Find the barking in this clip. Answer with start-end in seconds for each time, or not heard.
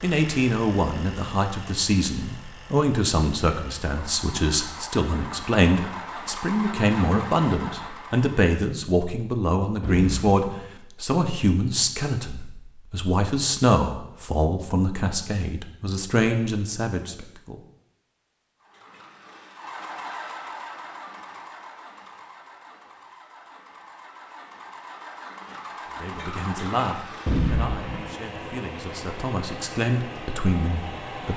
not heard.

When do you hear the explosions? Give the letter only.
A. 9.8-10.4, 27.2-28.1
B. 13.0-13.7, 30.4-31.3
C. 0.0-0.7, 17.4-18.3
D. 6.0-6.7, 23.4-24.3
A.